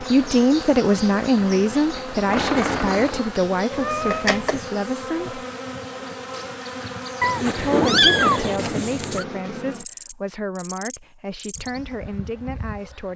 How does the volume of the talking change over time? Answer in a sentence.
The loudness of the talking goes down.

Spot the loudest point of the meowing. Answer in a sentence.
The volume of the meowing peaks at 8 seconds.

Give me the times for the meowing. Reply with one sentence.
The meowing can be heard from 3.7 to 4.6 s and from 7.2 to 9.2 s.